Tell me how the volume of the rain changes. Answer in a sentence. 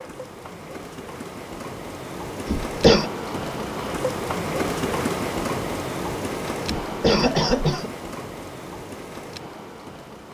The loudness of the rain goes up, then down.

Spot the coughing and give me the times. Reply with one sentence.
You can hear the coughing from 2.5 to 3.1 s and from 6.7 to 7.9 s.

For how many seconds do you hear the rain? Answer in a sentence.
You can hear the rain for 10 seconds altogether.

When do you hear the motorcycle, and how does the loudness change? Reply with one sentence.
The motorcycle can't be heard in this clip.